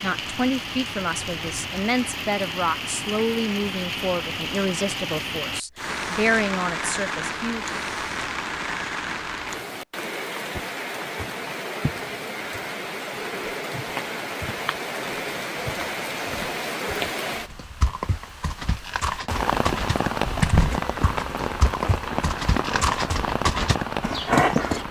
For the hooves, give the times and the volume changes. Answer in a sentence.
The hooves can be heard from 17.5 to 24.8 s, getting louder.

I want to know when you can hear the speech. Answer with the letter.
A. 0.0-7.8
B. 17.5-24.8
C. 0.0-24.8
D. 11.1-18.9
A.